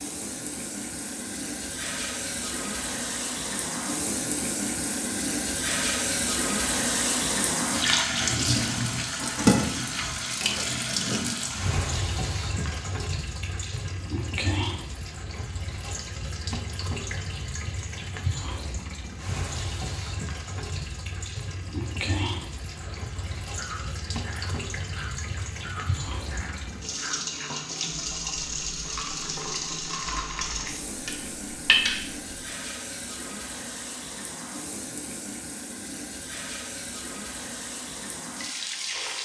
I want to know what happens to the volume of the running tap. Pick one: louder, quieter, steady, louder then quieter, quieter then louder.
quieter.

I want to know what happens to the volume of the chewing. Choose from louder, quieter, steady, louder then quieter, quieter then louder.
louder.